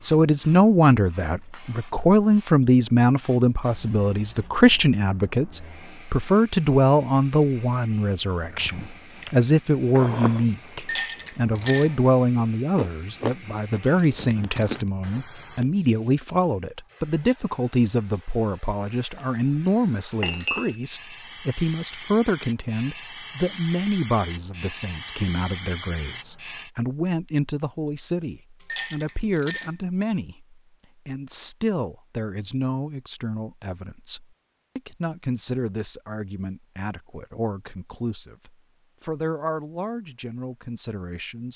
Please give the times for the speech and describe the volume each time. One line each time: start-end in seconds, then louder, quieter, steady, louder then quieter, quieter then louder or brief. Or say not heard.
0.0-41.5 quieter.